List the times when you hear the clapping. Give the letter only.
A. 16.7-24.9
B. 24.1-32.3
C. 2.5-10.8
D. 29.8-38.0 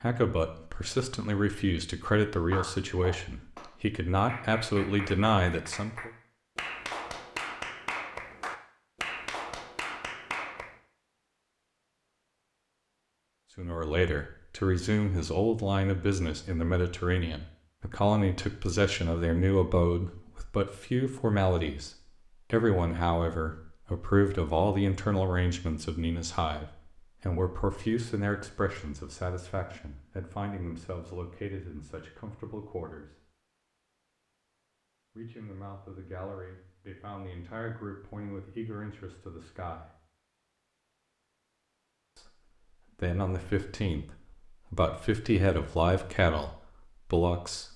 C.